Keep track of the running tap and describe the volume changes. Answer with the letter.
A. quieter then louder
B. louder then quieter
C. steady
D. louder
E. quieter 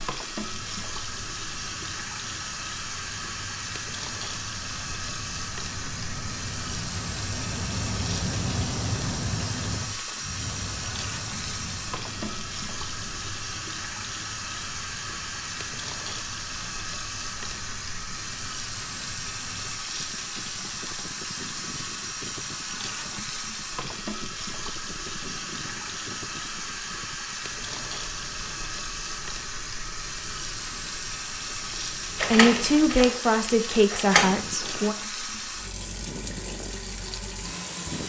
C.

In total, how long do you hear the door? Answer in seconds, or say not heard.
2 s.